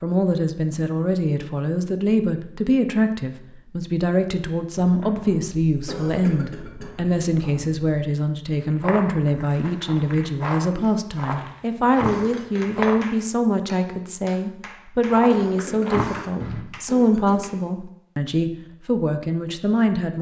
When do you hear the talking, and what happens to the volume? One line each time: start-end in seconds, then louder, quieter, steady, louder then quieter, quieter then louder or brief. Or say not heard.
0.0-20.1 steady.